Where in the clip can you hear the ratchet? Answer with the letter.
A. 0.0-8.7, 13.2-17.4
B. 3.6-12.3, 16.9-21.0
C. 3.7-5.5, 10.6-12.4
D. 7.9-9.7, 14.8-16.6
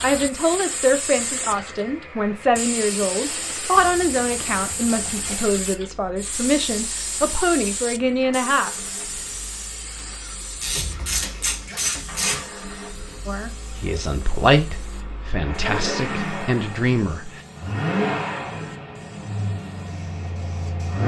C.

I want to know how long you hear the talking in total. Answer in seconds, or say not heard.
13 s.